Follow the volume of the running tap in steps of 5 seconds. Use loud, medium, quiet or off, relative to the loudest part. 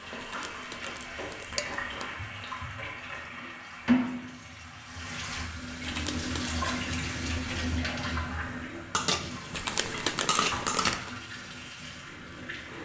loud, loud, medium.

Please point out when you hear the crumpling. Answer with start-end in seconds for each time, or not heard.
0.2-2.1, 5.8-6.5, 9.5-11.1.